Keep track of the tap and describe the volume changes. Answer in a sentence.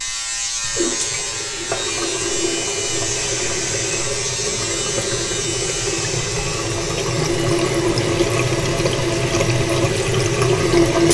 The loudness of the tap goes up.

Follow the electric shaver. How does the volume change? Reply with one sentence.
The loudness of the electric shaver goes down.